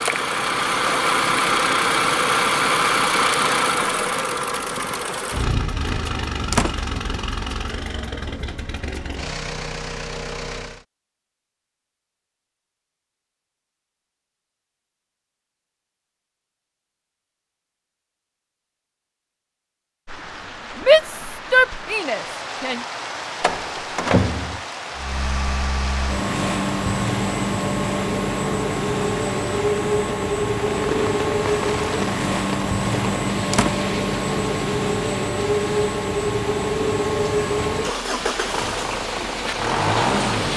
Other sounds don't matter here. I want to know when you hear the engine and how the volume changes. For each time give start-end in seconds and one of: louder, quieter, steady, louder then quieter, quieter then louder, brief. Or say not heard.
0.0-10.8 quieter
24.9-40.5 steady.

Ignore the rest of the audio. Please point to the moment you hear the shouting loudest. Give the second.
21 s.